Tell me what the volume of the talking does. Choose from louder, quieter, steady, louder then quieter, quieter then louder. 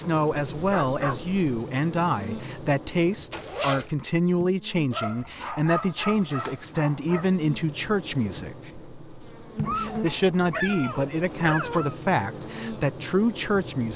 steady.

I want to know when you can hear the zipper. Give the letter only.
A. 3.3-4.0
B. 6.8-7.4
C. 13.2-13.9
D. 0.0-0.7
A.